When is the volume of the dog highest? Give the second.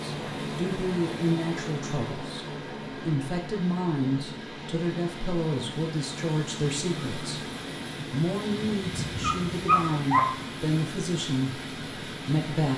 10 s.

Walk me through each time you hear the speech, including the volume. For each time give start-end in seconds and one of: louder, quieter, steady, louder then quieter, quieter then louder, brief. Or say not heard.
0.0-12.7 steady.